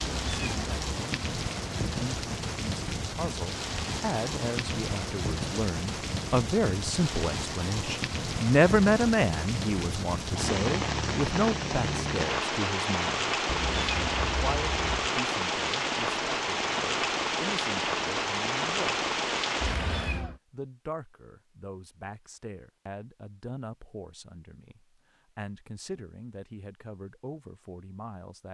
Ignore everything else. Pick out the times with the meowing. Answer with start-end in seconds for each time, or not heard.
0.0-0.8, 13.4-15.1, 19.6-20.4.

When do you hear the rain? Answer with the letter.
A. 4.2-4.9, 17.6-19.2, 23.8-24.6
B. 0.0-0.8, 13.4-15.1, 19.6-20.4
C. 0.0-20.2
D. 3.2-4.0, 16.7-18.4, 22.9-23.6
C.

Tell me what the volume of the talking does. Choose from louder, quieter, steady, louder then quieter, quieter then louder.
louder then quieter.